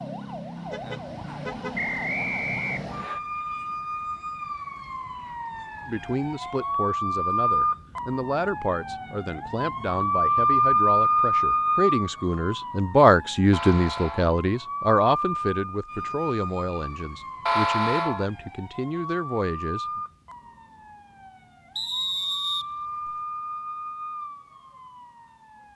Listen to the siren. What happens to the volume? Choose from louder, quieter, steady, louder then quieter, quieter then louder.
louder then quieter.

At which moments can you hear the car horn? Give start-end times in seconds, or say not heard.
0.7-1.8, 13.5-14.3, 17.4-18.3.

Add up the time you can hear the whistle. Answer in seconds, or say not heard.
3 s.